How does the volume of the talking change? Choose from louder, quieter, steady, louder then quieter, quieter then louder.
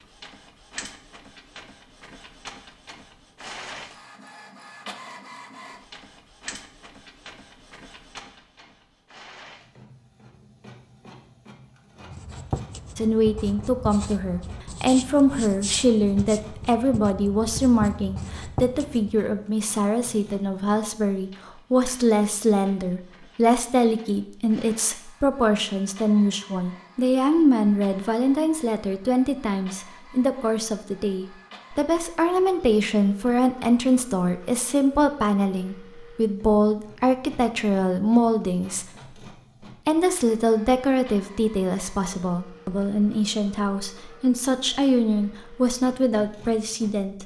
steady.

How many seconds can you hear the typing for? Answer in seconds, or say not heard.
not heard.